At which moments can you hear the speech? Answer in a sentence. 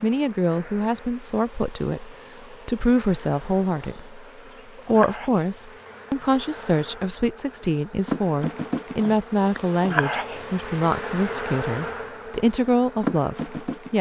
You can hear the speech from 0.0 to 4.1 s and from 4.8 to 13.9 s.